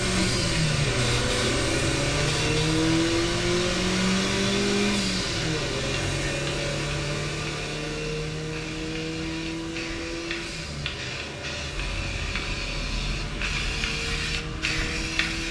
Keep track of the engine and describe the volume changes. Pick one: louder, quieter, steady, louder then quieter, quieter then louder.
quieter.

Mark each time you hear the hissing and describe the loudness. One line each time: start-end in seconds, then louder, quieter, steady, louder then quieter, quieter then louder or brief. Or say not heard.
0.0-15.4 quieter then louder.